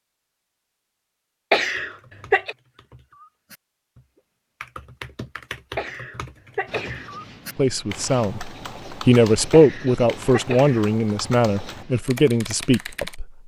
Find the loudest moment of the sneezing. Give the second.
2 s.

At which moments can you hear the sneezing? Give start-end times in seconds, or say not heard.
1.5-2.5, 5.8-7.1, 9.5-10.9.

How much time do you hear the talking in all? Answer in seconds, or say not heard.
6 s.